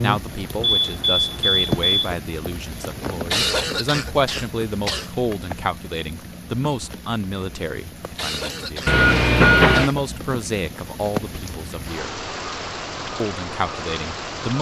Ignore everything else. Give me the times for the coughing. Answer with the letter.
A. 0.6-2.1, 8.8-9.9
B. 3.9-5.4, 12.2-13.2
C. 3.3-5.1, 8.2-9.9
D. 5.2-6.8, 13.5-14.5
C.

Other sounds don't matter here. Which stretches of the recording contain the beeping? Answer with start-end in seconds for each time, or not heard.
0.6-2.1, 8.8-9.9.